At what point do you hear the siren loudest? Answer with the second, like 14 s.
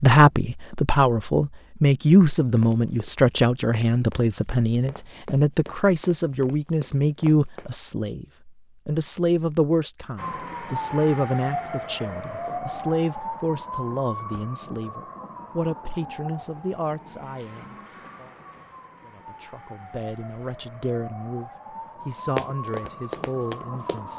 11 s.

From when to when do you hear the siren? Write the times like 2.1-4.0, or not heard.
10.2-24.1.